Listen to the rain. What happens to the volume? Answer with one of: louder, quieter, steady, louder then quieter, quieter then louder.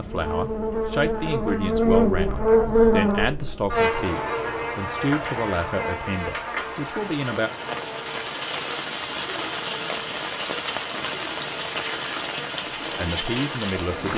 louder.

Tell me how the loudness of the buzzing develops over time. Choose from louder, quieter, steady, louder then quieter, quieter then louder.
quieter.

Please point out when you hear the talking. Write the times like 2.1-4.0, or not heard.
0.0-7.5, 12.9-14.1.